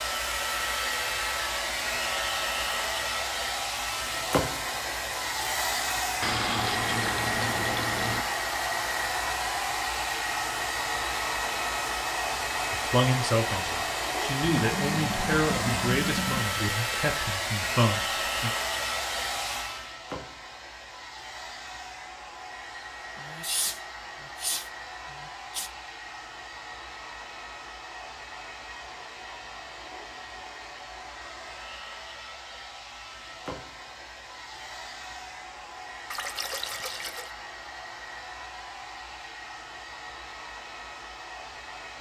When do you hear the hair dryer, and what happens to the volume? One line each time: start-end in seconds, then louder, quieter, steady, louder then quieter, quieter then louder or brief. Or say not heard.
0.0-41.9 quieter.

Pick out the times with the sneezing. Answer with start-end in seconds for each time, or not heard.
23.1-25.7.